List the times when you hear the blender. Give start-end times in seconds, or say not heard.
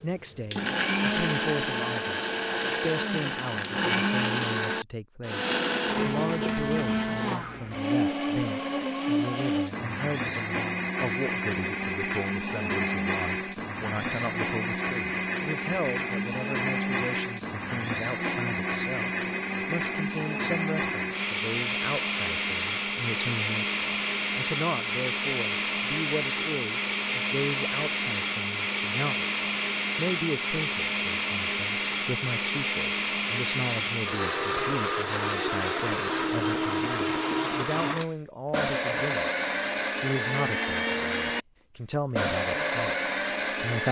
0.0-43.8.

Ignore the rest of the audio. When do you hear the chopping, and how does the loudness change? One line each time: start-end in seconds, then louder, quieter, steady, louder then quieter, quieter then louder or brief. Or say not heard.
not heard.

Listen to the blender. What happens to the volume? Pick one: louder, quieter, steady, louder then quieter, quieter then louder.
steady.